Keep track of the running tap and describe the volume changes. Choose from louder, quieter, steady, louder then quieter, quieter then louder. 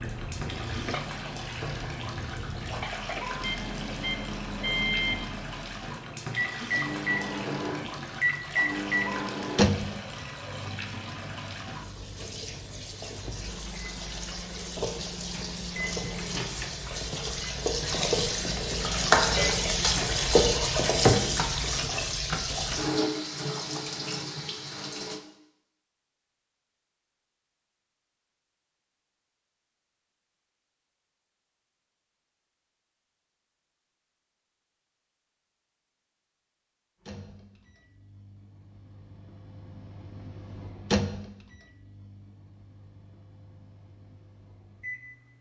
louder.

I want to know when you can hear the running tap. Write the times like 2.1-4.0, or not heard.
0.0-25.2.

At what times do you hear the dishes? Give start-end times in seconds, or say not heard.
0.0-3.5.